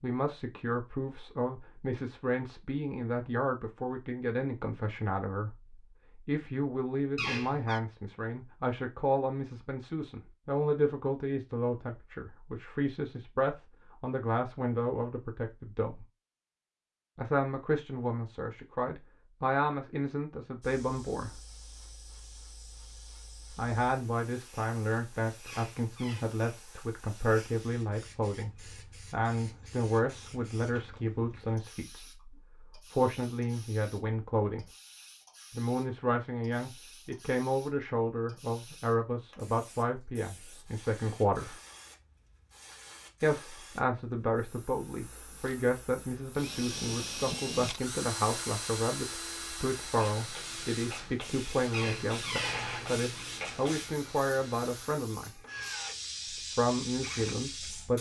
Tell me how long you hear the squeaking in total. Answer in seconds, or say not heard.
3 s.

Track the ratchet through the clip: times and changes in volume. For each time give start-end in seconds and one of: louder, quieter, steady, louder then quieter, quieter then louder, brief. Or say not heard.
not heard.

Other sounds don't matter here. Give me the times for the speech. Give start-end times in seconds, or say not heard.
0.0-16.1, 17.1-21.4, 23.6-34.6, 35.5-41.5, 43.2-55.4, 56.5-57.9.